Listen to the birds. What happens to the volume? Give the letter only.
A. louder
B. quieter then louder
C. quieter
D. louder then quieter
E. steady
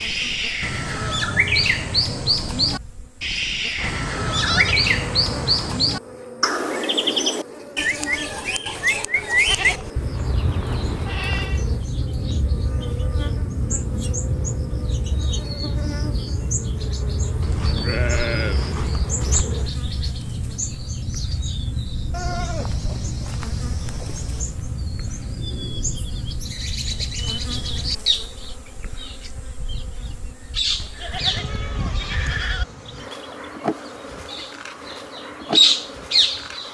B.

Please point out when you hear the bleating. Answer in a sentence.
The bleating can be heard from 3.8 to 5.8 s, from 9.4 to 11.7 s, from 17.4 to 19.4 s, from 22.1 to 24.5 s and from 30.8 to 32.6 s.